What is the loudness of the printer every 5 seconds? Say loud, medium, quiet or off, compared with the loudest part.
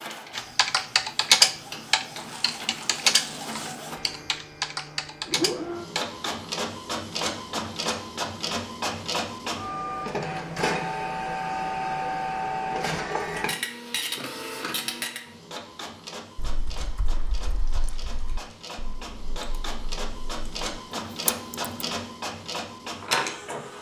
medium, loud, loud, medium, loud.